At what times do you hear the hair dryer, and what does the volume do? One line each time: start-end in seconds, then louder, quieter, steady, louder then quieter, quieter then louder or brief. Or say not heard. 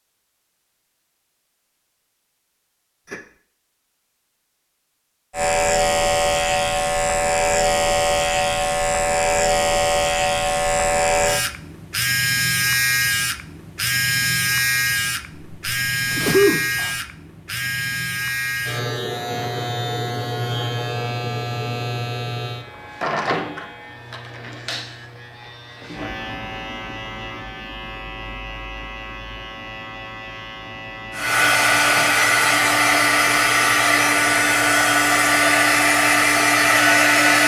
31.1-37.4 steady.